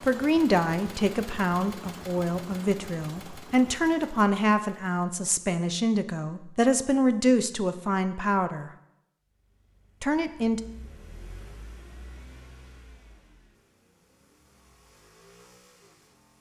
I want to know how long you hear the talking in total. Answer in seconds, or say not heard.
9 s.